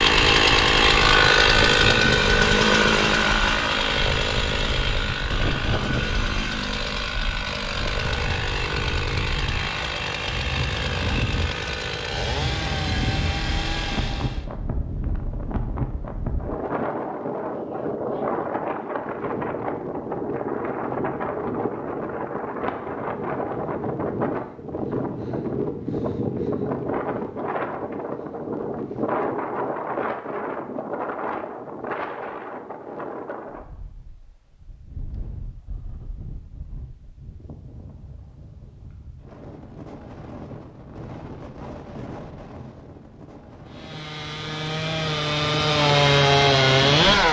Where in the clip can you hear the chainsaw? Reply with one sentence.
The chainsaw can be heard from 0.0 to 14.4 s and from 43.6 to 47.2 s.